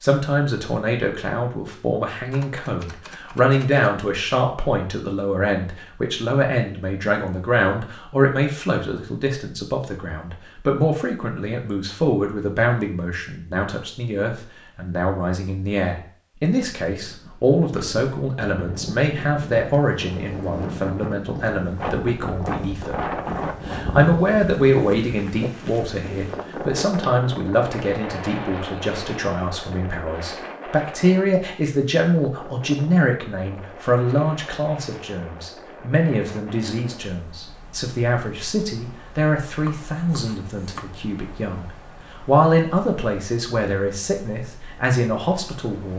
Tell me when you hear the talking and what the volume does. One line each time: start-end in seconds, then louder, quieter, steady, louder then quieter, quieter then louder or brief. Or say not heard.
0.0-45.9 steady.